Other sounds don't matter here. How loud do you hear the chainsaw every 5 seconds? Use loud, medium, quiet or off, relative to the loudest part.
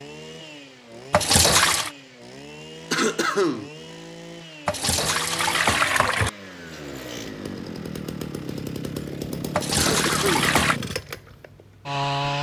quiet, medium, loud.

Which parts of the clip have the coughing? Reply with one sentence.
You can hear the coughing from 2.9 to 3.7 s and from 9.8 to 10.5 s.